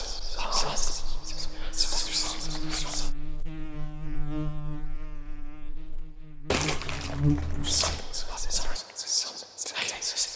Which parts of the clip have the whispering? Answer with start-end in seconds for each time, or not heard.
0.0-3.1, 7.6-10.3.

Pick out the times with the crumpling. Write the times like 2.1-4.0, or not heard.
2.1-3.0, 6.5-8.1.